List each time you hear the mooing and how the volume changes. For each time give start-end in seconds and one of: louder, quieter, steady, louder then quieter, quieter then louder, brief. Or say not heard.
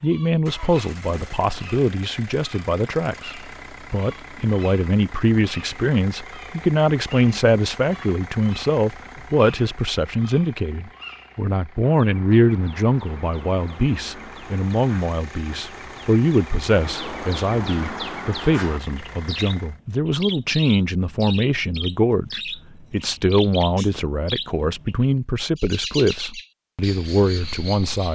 not heard.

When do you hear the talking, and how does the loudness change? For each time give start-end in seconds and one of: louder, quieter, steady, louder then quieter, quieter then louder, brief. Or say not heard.
0.0-28.1 steady.